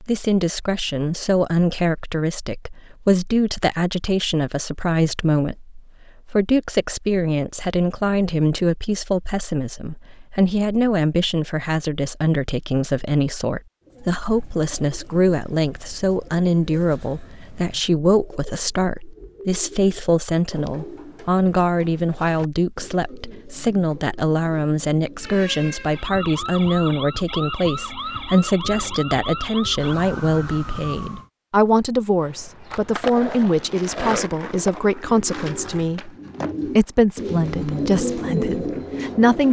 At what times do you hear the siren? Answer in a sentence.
You can hear the siren from 25.2 to 31.3 s.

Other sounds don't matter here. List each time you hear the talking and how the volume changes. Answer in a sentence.
You can hear the talking from 0.0 to 39.4 s, at a steady volume.